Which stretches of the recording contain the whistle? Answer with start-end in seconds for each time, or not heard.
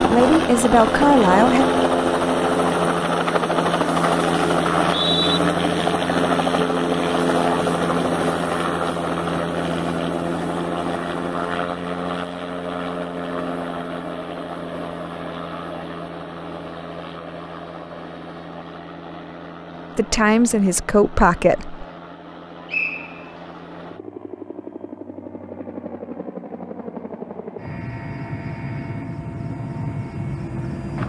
4.8-5.4, 22.6-23.4.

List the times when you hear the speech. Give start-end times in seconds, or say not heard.
0.0-1.6, 19.9-21.9.